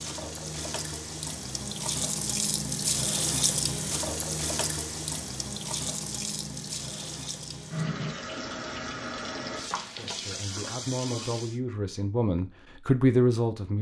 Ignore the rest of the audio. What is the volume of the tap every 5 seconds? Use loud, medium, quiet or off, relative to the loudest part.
loud, loud, medium.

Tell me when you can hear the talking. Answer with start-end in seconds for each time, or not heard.
9.9-13.7.